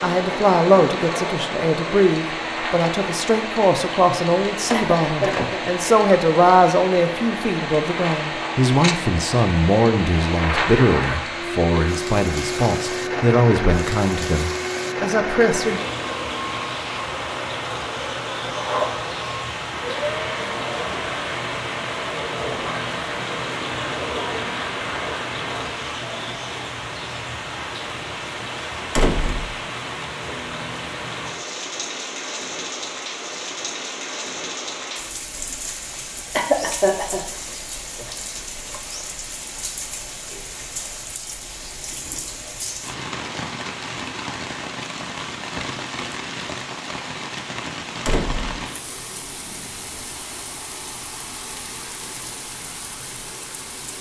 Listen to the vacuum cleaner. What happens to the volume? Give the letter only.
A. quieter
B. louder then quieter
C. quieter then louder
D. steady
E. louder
D.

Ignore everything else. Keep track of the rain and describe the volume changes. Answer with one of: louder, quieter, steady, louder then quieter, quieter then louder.
steady.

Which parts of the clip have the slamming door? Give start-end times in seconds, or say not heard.
4.7-5.5, 28.9-29.5, 48.0-48.6.